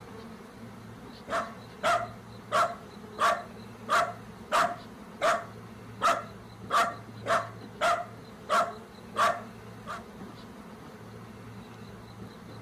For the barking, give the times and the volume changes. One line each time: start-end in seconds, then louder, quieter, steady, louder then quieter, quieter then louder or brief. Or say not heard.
1.2-10.0 steady.